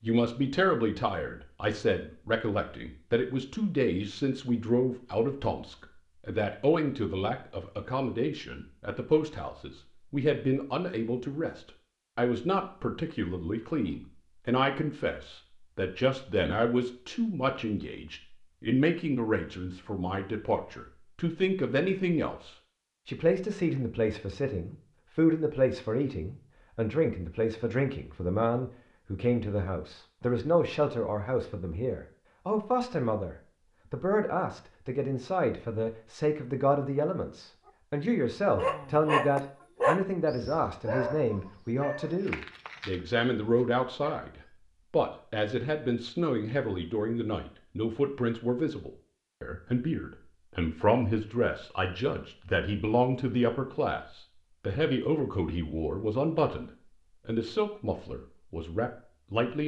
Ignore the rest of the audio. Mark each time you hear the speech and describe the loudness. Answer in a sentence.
The speech can be heard from 0.0 to 59.6 s, at a steady volume.